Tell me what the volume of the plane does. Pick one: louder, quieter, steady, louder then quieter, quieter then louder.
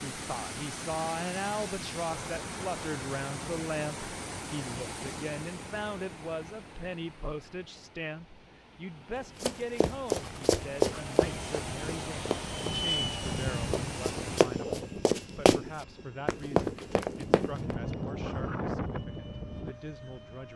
quieter then louder.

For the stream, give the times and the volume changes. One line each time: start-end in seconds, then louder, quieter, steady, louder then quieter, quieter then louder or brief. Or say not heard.
0.0-14.4 quieter then louder.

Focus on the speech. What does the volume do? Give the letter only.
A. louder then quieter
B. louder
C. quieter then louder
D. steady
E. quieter
E.